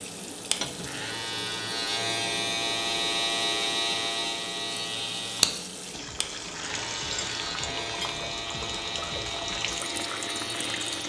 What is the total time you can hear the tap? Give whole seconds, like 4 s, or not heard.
11 s.